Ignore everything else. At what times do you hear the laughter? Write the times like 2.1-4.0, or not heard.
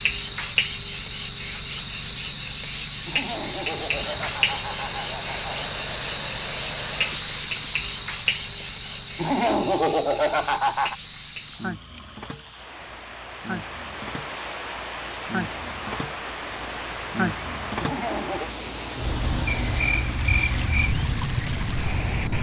3.0-5.7, 9.2-10.9, 17.8-18.5.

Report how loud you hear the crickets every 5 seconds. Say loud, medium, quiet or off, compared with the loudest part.
loud, loud, medium, loud, loud.